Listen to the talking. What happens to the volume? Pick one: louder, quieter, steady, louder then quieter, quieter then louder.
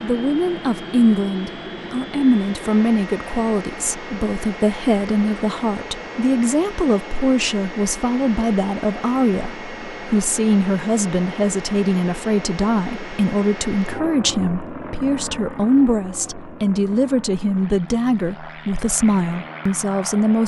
steady.